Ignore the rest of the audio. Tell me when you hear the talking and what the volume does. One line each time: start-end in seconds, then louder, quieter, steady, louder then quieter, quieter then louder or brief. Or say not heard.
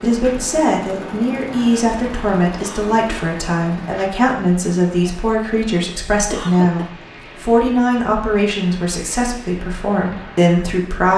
0.0-11.1 steady.